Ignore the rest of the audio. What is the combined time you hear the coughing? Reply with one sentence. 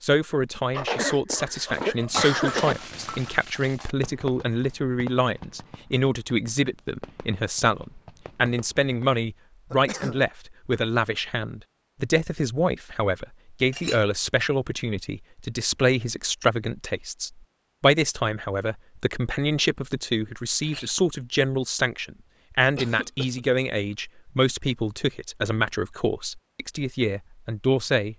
The coughing can be heard for 3 seconds in total.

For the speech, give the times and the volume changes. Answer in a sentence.
The speech can be heard from 0.0 to 28.1 s, at a steady volume.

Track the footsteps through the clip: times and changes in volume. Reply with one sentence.
You can't hear the footsteps here.